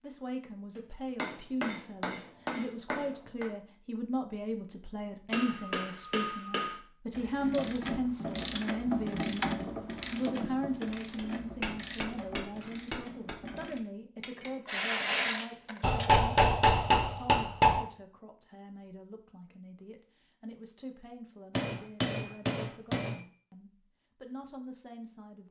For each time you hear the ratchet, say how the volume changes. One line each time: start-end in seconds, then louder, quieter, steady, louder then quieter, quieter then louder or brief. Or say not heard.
7.2-16.2 quieter then louder.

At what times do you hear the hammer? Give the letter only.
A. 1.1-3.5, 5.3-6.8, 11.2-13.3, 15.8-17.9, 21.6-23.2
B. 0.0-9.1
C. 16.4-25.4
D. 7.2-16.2
A.